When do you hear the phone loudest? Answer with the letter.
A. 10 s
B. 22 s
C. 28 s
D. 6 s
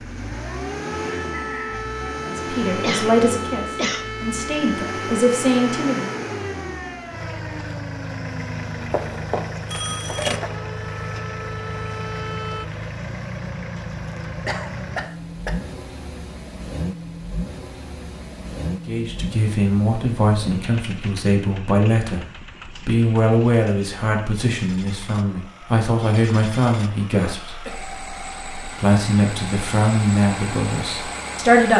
A.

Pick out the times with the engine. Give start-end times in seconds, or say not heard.
0.0-31.7.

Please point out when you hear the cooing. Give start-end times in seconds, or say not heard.
not heard.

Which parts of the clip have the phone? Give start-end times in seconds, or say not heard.
8.9-10.6.